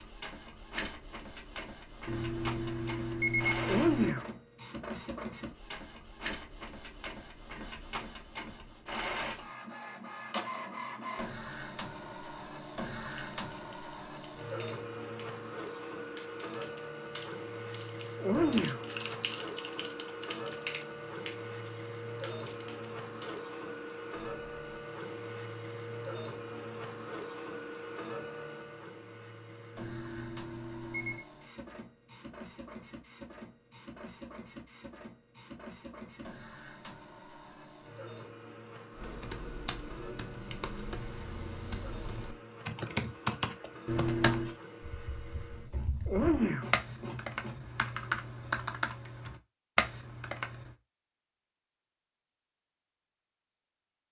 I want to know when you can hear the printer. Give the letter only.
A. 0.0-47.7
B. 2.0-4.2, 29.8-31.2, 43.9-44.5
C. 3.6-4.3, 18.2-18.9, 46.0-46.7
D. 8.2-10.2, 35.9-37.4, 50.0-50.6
A.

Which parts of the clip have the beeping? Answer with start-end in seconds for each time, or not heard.
2.0-4.2, 29.8-31.2, 43.9-44.5.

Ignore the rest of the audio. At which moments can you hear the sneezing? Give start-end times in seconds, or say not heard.
3.6-4.3, 18.2-18.9, 46.0-46.7.